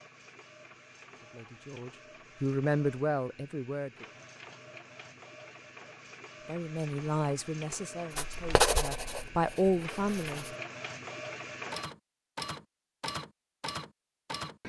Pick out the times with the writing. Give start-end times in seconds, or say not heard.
8.1-10.6.